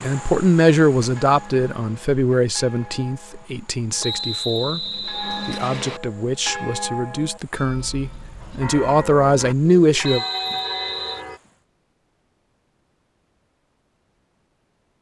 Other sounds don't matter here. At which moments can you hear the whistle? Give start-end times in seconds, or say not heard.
4.0-6.0, 10.0-11.2.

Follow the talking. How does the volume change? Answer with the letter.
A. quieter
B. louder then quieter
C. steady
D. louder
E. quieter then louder
E.